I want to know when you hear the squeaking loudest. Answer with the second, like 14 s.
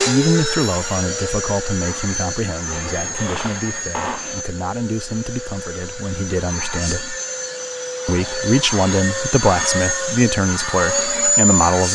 4 s.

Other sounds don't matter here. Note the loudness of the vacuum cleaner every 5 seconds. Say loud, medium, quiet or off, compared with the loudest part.
medium, medium, loud.